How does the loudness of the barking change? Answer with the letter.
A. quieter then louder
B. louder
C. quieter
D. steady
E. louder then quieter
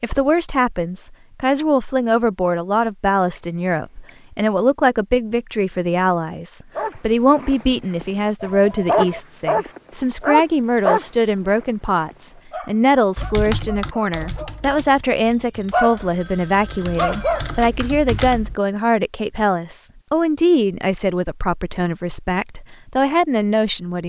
A.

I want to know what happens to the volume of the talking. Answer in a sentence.
The loudness of the talking stays about the same.